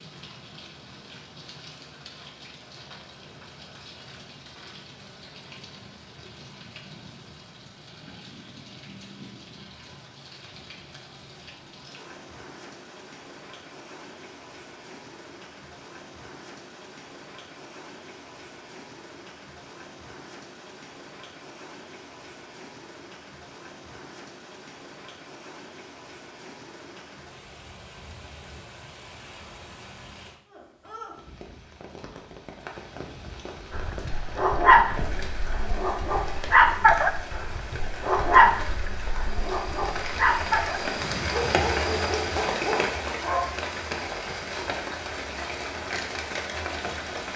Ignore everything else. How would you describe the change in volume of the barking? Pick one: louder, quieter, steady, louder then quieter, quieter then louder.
quieter.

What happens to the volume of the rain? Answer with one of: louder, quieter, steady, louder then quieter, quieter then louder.
louder.